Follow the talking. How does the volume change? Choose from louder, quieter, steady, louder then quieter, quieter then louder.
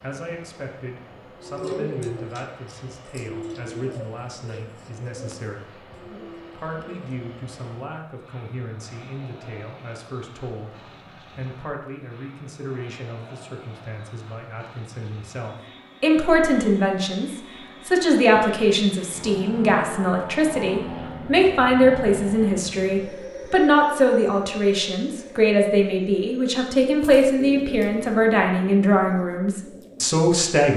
louder.